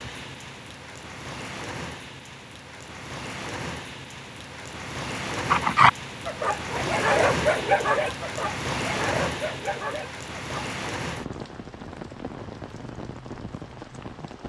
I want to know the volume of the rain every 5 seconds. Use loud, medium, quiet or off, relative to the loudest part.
medium, loud, medium.